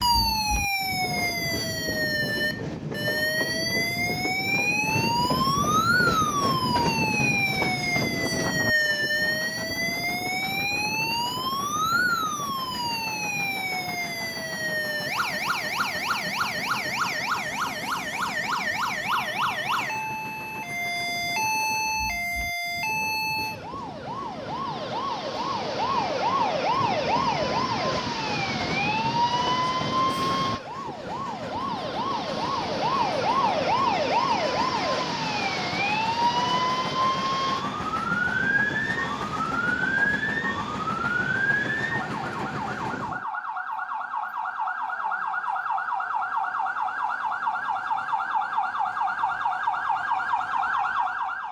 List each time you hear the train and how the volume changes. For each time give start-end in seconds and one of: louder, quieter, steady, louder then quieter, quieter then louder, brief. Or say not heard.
0.0-43.2 quieter then louder.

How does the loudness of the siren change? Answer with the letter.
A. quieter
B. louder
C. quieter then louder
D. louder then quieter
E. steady
E.